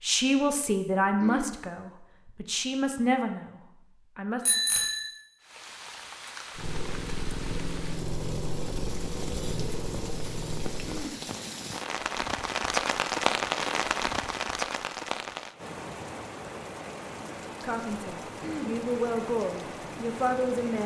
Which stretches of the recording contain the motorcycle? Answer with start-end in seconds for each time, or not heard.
6.5-11.1.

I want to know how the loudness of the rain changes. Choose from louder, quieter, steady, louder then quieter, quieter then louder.
louder then quieter.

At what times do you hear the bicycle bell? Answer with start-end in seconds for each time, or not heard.
4.5-5.1.